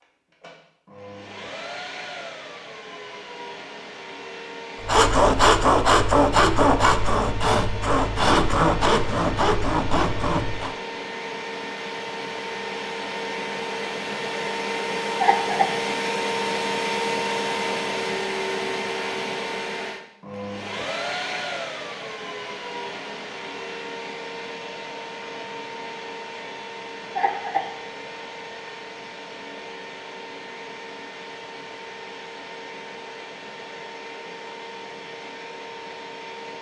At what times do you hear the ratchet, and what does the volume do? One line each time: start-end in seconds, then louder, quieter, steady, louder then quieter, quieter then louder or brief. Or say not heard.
not heard.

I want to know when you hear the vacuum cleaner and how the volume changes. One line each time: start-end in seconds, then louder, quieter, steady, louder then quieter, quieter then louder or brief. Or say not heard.
0.0-36.5 louder then quieter.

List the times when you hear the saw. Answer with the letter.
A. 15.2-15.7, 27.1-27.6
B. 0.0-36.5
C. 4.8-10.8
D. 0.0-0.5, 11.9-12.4
C.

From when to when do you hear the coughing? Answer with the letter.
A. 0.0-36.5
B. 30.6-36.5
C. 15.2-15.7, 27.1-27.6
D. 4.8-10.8
C.